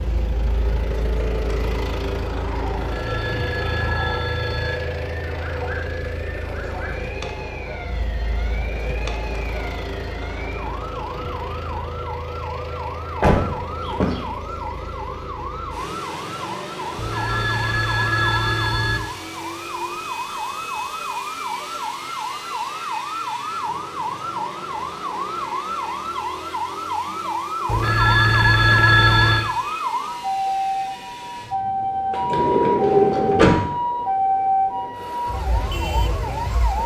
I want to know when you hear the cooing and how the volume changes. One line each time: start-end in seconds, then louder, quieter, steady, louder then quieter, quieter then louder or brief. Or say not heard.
not heard.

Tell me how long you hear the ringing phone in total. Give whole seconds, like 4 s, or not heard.
6 s.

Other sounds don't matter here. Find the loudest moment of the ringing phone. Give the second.
29 s.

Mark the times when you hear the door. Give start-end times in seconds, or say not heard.
13.2-14.2, 32.1-33.6.